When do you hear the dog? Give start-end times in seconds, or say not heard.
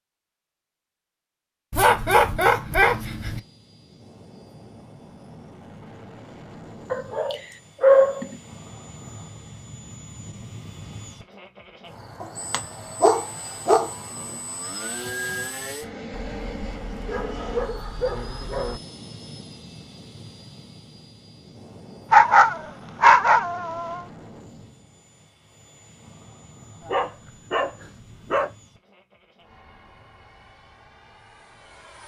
1.7-3.4, 6.9-8.3, 12.2-13.9, 16.1-18.8, 22.1-24.0, 26.8-28.5.